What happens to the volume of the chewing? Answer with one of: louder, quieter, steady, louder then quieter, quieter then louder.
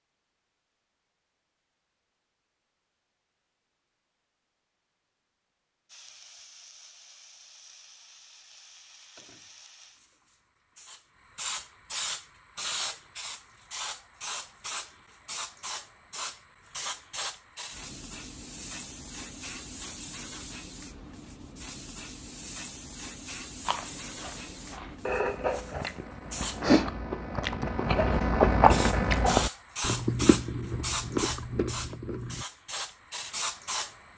louder then quieter.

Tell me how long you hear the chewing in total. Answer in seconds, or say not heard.
9 s.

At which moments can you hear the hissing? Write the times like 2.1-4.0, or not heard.
5.8-26.6, 28.7-34.1.